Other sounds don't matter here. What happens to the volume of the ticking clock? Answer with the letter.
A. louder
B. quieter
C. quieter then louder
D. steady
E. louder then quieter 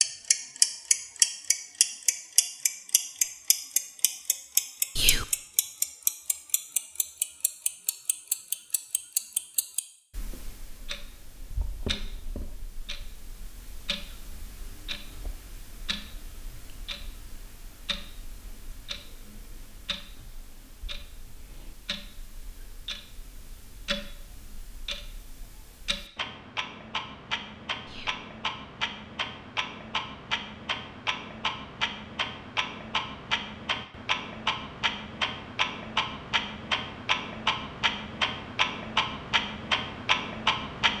C.